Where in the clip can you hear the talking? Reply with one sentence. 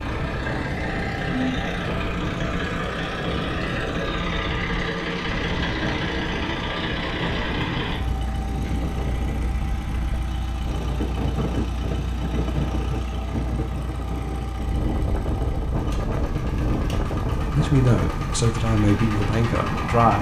The talking can be heard from 17.5 to 20.1 s.